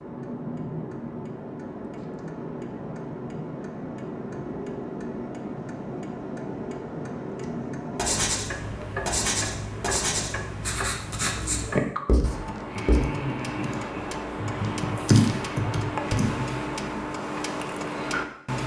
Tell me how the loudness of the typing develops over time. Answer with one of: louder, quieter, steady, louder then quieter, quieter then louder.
louder then quieter.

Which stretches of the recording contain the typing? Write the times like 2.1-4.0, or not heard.
12.2-16.4.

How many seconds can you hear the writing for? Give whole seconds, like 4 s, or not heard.
5 s.